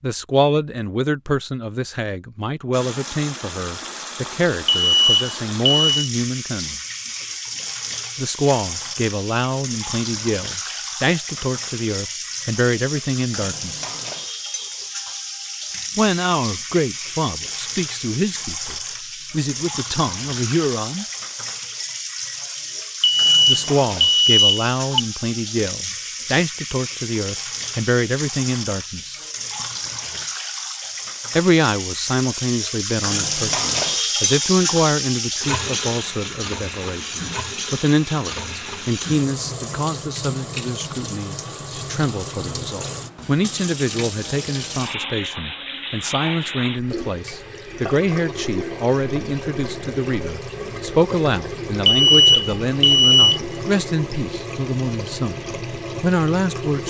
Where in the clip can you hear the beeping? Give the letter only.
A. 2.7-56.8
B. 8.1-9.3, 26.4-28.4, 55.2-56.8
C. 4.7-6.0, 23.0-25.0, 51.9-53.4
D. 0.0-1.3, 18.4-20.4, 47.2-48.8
C.